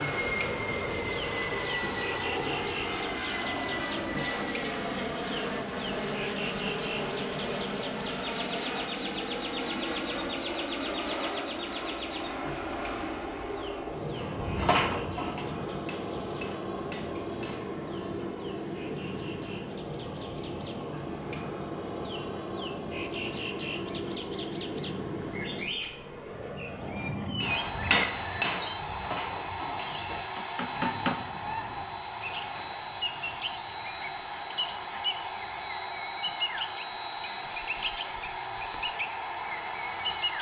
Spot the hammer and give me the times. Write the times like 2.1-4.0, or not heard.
14.2-17.8, 27.4-31.2.